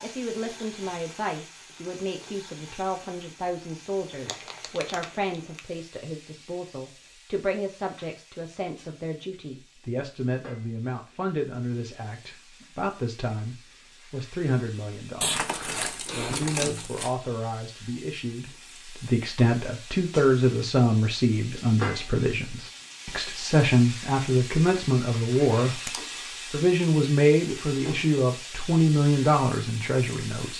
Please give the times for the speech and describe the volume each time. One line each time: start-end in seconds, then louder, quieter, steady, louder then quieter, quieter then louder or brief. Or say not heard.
0.0-30.5 louder.